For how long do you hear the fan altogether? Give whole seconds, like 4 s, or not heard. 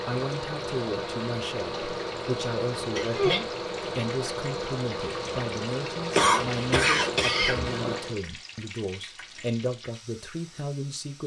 8 s.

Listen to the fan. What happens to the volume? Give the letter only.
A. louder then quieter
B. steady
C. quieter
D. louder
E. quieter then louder
B.